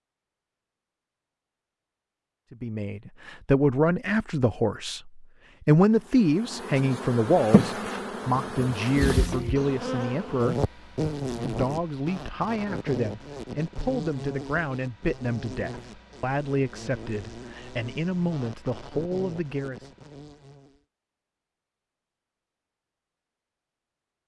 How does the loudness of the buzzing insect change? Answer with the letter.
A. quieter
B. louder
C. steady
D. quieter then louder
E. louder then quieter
A.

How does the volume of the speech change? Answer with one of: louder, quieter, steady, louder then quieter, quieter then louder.
quieter.